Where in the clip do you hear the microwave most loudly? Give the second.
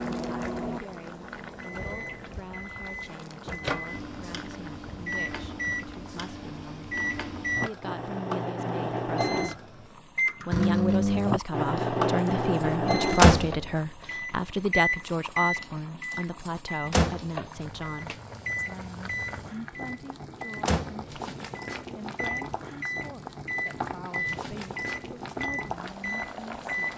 13 s.